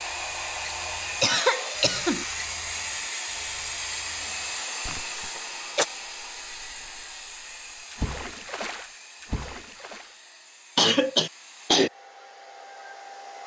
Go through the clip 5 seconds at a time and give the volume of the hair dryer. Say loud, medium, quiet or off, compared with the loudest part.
loud, medium, quiet.